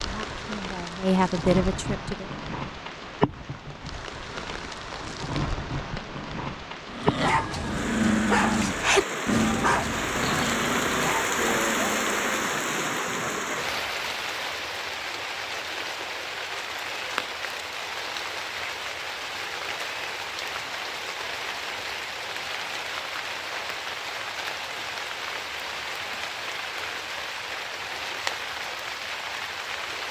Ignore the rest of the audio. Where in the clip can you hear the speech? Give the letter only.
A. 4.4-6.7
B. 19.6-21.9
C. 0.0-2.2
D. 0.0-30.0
C.